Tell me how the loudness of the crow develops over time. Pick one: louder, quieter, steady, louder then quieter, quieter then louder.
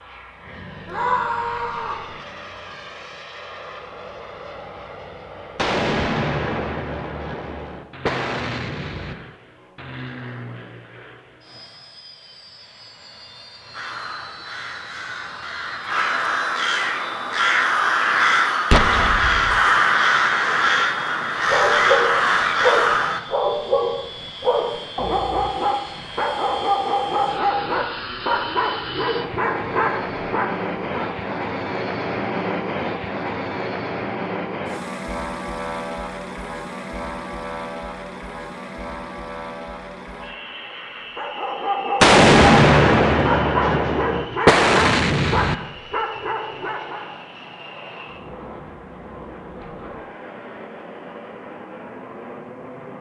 louder.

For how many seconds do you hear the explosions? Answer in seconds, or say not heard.
8 s.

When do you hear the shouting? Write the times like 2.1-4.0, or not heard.
0.8-2.0.